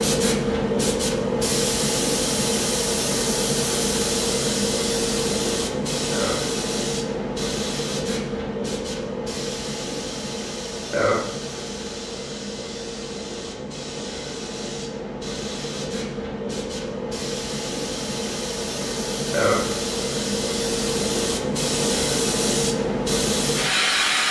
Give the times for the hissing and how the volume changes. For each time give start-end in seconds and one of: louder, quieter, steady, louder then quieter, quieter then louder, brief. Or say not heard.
0.0-24.2 quieter then louder.